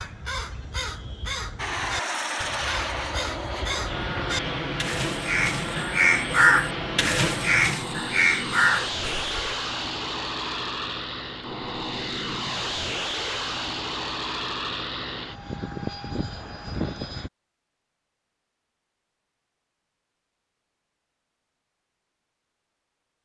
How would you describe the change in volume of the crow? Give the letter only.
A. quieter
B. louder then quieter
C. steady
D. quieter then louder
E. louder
E.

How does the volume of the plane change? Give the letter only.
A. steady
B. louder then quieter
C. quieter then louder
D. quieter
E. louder
A.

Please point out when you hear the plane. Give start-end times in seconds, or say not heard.
1.6-17.3.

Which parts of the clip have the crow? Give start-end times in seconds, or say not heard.
0.0-9.5.